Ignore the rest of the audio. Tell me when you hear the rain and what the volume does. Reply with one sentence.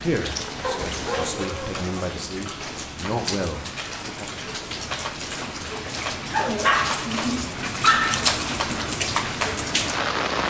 You can hear the rain from 0.0 to 10.4 s, getting louder.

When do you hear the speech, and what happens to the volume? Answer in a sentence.
You can hear the speech from 0.0 to 4.3 s, getting louder.